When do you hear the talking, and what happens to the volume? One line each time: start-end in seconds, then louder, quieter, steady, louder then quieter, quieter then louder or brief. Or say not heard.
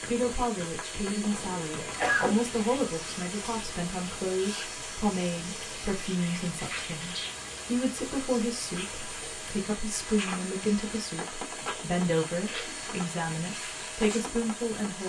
0.0-15.0 steady.